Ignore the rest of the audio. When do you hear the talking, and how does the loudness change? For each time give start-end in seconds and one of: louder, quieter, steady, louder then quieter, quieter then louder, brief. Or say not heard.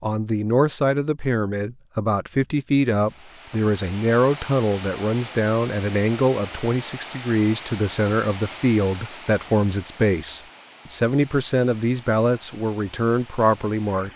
0.0-14.1 steady.